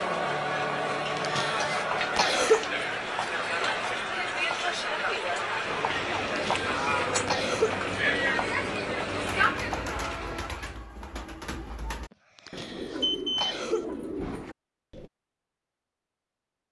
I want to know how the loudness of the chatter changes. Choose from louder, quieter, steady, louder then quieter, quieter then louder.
steady.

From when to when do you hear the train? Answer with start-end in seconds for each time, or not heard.
5.7-10.5.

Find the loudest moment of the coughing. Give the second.
2 s.